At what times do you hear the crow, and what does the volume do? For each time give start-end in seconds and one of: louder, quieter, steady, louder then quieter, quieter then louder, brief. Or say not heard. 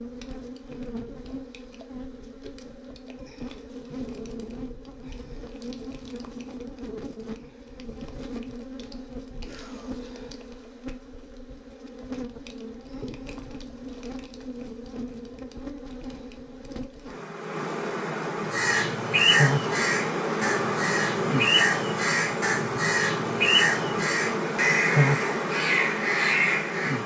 18.5-27.0 steady.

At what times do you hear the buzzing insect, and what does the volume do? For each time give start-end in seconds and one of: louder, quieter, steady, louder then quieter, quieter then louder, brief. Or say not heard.
0.0-27.0 louder.